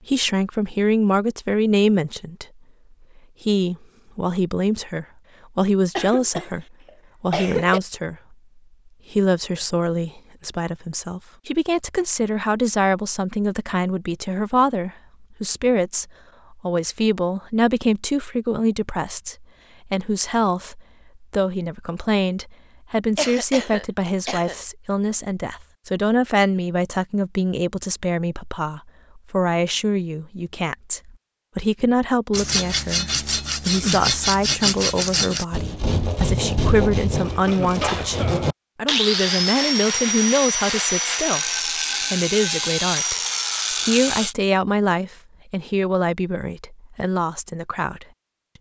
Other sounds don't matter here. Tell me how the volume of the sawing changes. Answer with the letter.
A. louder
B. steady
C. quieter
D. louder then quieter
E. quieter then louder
B.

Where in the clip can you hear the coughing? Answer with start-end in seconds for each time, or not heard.
6.0-7.8, 23.1-24.6, 37.2-38.5.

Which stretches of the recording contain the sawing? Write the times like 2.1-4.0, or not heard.
32.3-44.4.